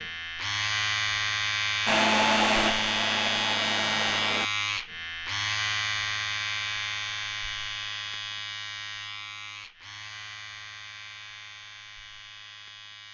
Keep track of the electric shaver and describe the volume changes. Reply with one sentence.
The volume of the electric shaver goes down.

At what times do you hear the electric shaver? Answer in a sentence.
You can hear the electric shaver from 0.0 to 13.0 s.